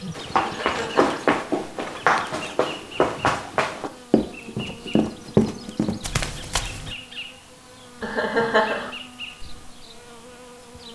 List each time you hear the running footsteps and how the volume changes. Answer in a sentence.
You can hear the running footsteps from 0.1 to 7.0 s, at a steady volume.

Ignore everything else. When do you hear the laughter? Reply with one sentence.
The laughter can be heard from 0.4 to 1.1 s and from 8.0 to 8.9 s.